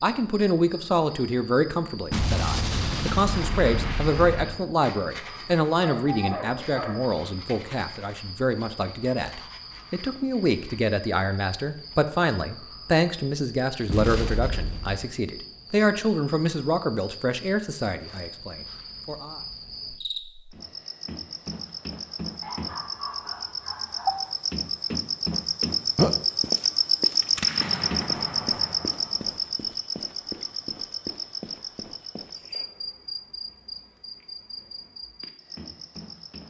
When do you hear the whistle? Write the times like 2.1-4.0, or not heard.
not heard.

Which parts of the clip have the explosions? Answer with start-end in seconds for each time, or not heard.
2.1-4.7, 13.8-15.1, 27.2-29.4.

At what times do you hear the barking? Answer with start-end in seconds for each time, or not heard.
5.4-7.0, 22.4-24.4.